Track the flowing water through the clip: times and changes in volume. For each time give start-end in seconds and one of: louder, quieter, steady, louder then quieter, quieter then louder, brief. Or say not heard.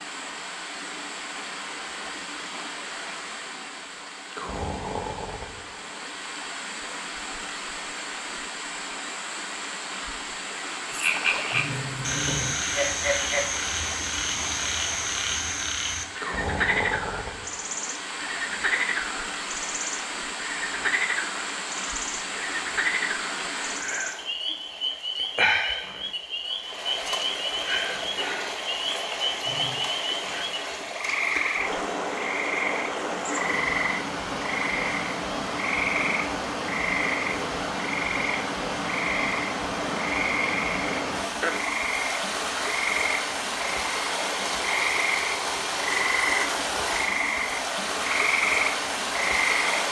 0.0-49.8 louder.